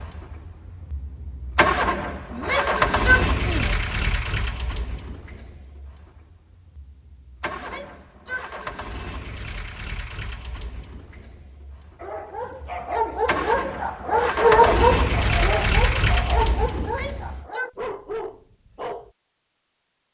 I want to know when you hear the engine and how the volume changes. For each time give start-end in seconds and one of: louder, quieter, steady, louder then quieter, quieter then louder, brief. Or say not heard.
0.0-17.4 quieter then louder.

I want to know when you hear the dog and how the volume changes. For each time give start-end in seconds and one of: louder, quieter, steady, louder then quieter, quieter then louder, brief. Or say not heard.
12.0-19.1 louder then quieter.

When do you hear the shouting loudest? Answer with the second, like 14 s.
3 s.